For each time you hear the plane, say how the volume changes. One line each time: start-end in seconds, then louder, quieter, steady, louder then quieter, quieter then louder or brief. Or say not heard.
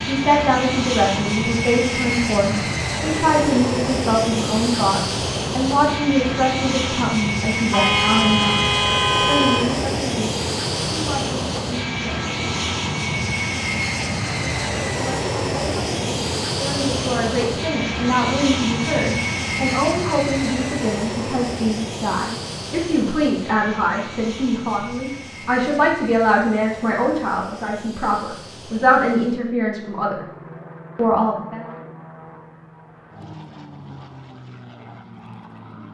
0.0-35.9 quieter.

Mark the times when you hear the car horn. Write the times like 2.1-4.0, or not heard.
7.7-9.6.